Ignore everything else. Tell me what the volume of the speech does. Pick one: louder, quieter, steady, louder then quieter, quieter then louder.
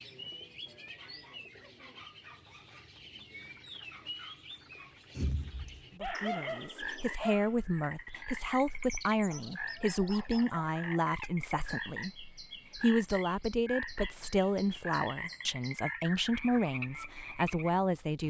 steady.